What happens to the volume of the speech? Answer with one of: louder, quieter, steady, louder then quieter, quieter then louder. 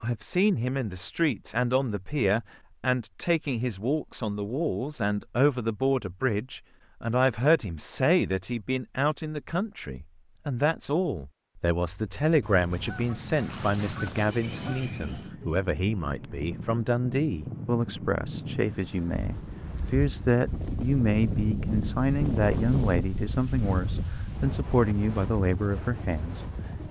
steady.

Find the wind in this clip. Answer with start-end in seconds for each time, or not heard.
11.8-26.8.